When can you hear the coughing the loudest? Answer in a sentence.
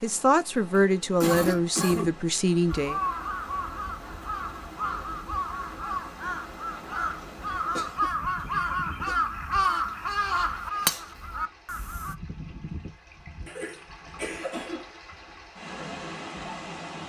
The volume of the coughing peaks at 1 second.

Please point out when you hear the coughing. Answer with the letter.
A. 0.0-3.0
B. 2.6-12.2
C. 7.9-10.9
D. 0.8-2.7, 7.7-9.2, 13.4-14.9
D.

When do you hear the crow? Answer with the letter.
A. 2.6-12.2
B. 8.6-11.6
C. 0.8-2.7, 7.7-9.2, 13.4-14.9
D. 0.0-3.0
A.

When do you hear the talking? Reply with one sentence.
The talking can be heard from 0.0 to 3.0 s.